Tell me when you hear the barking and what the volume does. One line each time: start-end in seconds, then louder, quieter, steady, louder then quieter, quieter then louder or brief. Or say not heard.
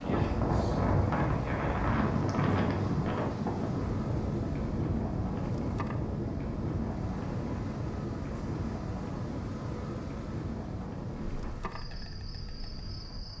not heard.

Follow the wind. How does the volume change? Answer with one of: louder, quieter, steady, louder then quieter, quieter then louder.
quieter.